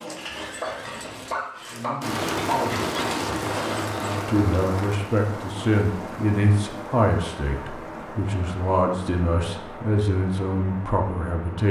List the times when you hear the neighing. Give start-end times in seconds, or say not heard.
0.2-1.4.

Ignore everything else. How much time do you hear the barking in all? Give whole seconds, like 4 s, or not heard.
4 s.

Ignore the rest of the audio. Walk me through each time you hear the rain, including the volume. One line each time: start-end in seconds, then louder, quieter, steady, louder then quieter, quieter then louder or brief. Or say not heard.
2.0-11.6 quieter.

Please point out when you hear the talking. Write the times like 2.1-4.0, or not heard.
1.6-11.6.